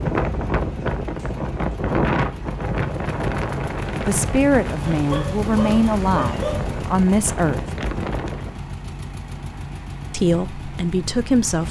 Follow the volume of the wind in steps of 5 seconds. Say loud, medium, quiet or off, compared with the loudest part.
loud, medium, off.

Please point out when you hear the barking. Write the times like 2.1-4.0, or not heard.
4.9-6.7.